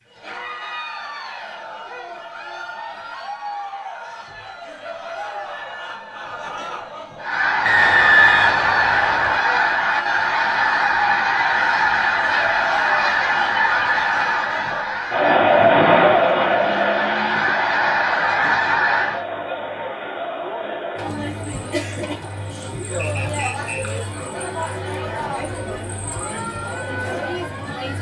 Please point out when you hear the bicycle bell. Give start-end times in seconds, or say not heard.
not heard.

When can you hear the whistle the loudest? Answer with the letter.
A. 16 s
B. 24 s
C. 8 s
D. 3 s
C.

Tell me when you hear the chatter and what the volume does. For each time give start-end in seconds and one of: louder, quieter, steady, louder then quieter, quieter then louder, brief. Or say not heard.
0.1-27.9 louder then quieter.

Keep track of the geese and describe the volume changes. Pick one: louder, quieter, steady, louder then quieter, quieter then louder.
quieter then louder.